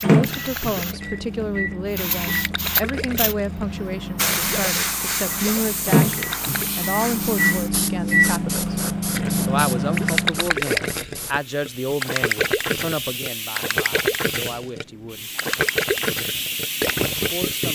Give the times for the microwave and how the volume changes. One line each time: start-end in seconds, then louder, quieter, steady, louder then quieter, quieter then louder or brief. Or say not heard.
0.0-10.6 louder.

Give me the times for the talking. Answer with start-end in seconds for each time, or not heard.
0.0-8.8, 9.4-15.3, 17.1-17.7.